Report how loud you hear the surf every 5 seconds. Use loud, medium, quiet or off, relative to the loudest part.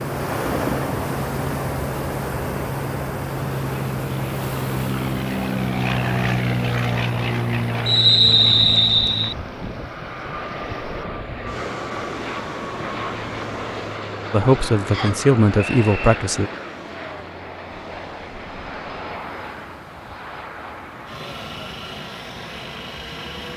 loud, medium, medium, quiet, quiet.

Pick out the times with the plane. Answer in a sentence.
You can hear the plane from 0.0 to 23.5 s.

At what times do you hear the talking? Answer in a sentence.
The talking can be heard from 14.3 to 16.5 s.